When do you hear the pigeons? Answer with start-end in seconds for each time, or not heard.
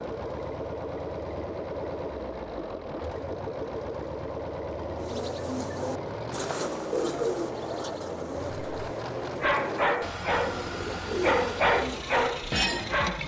5.0-12.9.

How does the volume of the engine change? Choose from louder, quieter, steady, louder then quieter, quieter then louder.
steady.